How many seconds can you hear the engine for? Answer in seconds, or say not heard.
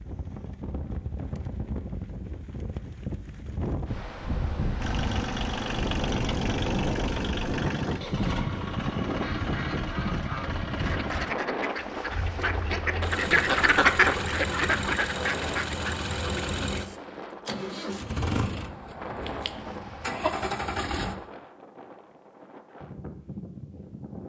16 s.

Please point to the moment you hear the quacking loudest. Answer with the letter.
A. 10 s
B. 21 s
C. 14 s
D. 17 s
C.